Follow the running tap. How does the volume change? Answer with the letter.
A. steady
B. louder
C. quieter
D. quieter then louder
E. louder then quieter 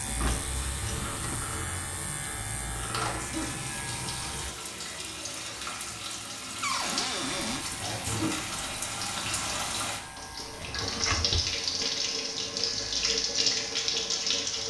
B.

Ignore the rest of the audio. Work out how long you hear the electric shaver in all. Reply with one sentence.
The electric shaver can be heard for 12 seconds in total.